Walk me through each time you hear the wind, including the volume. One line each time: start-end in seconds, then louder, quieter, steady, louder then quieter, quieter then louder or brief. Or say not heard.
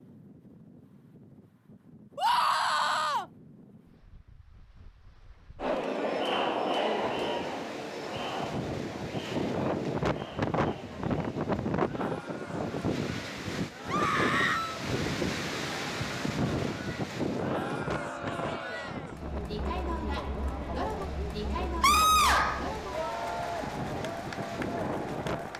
0.0-25.5 louder then quieter.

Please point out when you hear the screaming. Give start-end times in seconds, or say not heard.
2.1-3.2, 13.8-14.8, 21.8-22.7.